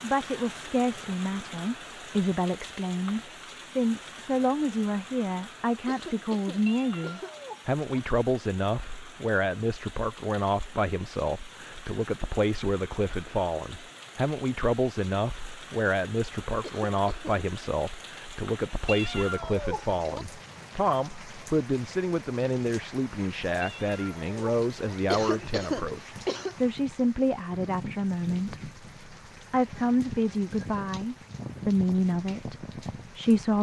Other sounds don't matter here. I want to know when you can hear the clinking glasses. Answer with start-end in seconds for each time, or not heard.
not heard.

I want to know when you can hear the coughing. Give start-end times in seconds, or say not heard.
5.8-7.3, 16.6-17.4, 25.1-26.6.